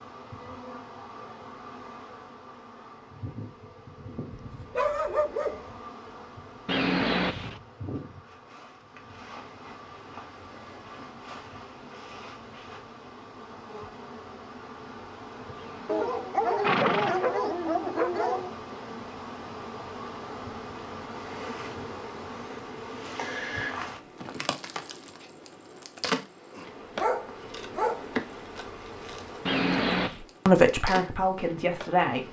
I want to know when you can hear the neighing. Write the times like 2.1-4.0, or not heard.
6.7-7.6, 15.6-17.3, 29.4-30.2.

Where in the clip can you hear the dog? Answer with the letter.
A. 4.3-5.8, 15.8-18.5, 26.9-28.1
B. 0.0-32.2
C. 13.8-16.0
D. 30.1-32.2
A.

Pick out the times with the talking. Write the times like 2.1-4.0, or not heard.
30.1-32.2.